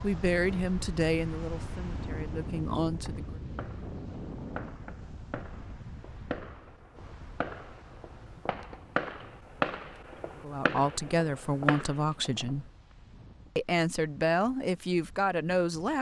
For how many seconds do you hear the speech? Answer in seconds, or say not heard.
8 s.